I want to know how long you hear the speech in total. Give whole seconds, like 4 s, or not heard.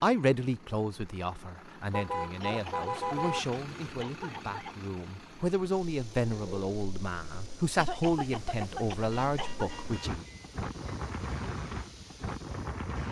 10 s.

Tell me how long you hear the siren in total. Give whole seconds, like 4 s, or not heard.
not heard.